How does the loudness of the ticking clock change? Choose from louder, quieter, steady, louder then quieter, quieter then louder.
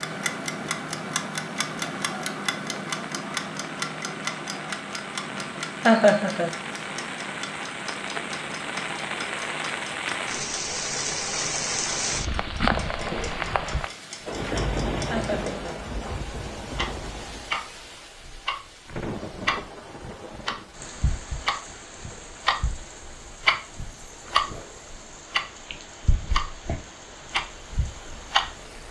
quieter then louder.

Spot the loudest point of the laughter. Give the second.
6 s.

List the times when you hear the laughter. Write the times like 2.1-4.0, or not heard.
5.8-6.5, 15.1-15.6.